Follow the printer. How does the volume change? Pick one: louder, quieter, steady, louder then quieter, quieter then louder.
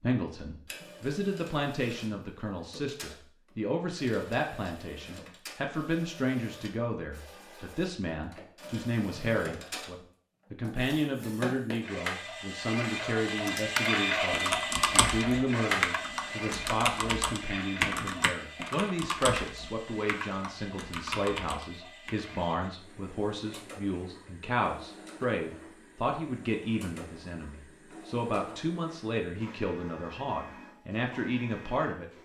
louder then quieter.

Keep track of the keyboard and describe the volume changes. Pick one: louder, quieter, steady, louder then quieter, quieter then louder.
quieter.